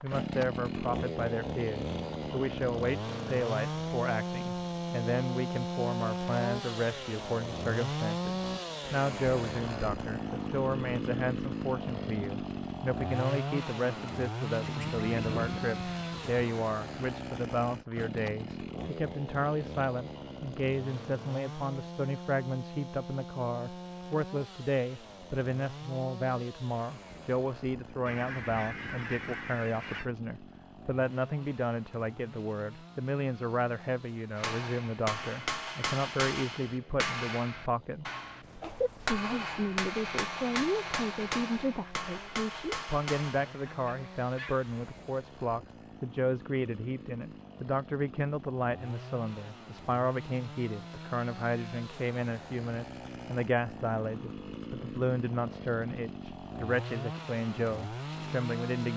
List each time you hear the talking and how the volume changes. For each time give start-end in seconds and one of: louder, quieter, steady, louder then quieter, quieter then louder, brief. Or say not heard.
0.0-58.9 steady.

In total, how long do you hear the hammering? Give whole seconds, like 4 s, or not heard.
9 s.